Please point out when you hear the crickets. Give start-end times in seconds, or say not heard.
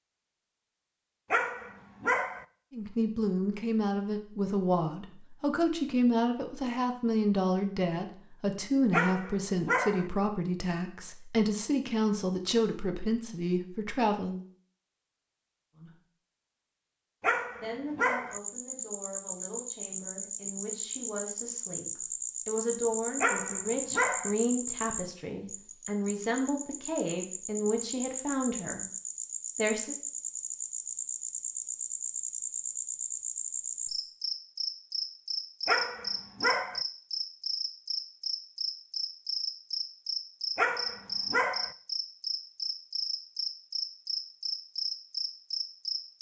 18.3-46.1.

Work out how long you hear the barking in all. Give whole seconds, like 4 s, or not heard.
7 s.